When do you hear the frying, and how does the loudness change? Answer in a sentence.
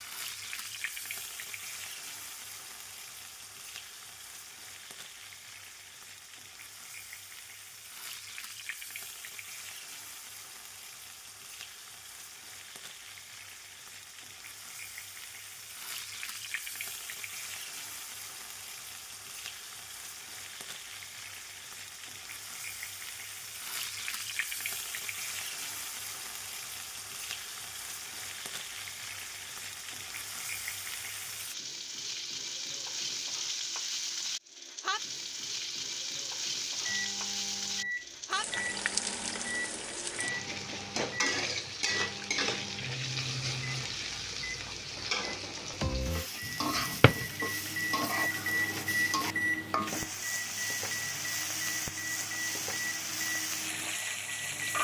The frying can be heard from 0.0 to 54.8 s, getting louder.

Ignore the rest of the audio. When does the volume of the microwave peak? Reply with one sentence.
The loudest moment of the microwave is at 49 seconds.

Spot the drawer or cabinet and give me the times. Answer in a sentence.
You can hear the drawer or cabinet from 46.5 to 47.2 s.